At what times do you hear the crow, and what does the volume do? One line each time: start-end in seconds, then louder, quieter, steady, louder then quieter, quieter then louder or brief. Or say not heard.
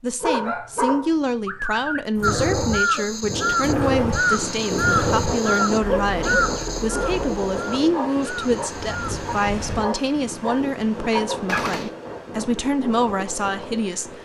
2.2-9.4 quieter.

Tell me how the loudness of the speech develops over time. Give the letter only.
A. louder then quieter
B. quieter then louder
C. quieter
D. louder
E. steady
E.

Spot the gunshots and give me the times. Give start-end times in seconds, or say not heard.
11.4-11.9.